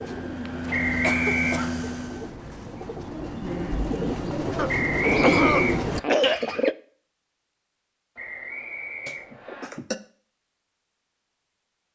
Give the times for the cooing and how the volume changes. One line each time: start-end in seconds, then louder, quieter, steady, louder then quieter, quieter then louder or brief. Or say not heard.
0.0-6.8 louder.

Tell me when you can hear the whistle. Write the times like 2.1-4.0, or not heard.
0.7-1.6, 4.7-6.0, 8.2-9.7.